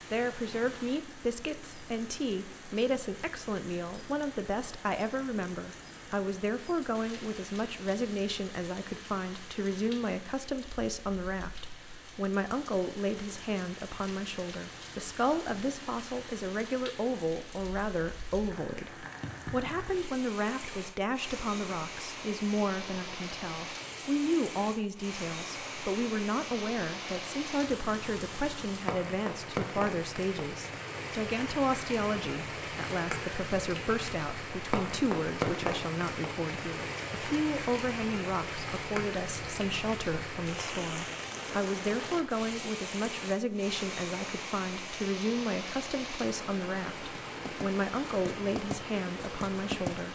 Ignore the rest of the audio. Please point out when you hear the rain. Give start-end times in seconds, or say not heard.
0.0-50.1.